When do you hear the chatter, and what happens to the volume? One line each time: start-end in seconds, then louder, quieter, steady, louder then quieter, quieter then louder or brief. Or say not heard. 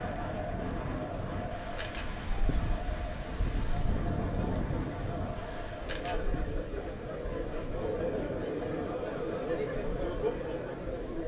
0.0-11.2 louder.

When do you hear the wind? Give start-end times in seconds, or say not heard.
0.0-11.2.